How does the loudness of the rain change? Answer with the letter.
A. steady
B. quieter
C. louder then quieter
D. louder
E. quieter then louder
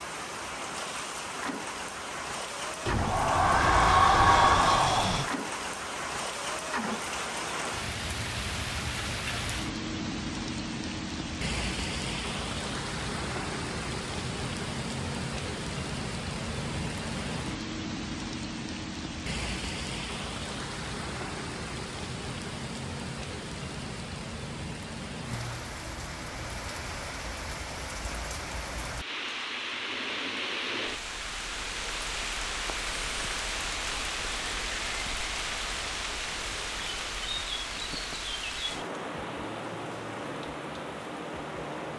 A.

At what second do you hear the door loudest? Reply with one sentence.
The loudest moment of the door is at 4 seconds.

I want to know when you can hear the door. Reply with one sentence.
You can hear the door from 2.9 to 5.3 s.